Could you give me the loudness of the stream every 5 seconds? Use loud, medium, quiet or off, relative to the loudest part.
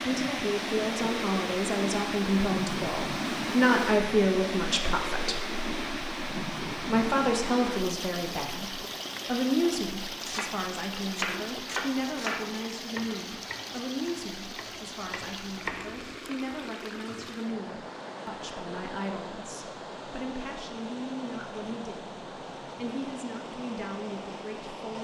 loud, loud, medium, medium, medium.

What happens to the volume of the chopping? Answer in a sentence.
The loudness of the chopping goes down, then up.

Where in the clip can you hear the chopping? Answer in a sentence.
The chopping can be heard from 10.2 to 16.1 s.